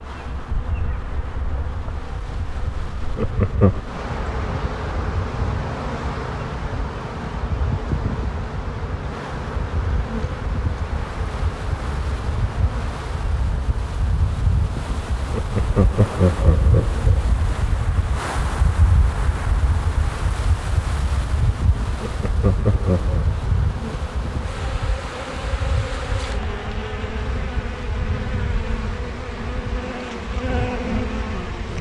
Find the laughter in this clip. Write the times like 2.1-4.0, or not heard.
3.1-3.8, 15.3-17.2, 22.0-23.2.